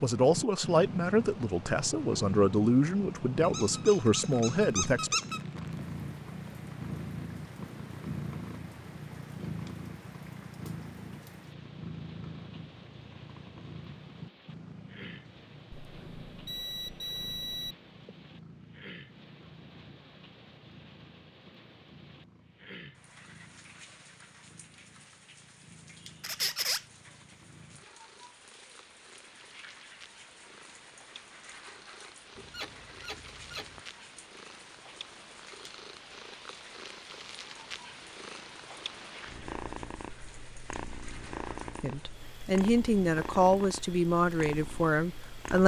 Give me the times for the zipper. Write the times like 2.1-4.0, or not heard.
not heard.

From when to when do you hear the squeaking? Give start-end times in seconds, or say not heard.
3.4-5.4, 26.2-26.9, 32.4-33.8.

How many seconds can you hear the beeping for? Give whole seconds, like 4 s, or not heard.
2 s.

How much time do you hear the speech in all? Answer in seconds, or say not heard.
9 s.